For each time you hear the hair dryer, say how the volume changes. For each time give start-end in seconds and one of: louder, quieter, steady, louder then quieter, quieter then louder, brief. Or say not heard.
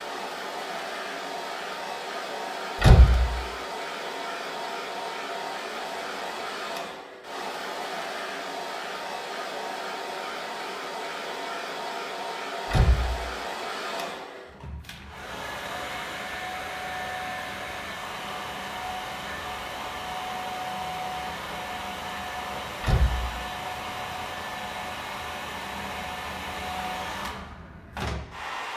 0.0-28.7 steady.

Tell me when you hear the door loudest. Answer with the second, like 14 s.
3 s.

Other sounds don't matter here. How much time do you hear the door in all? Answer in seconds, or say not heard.
2 s.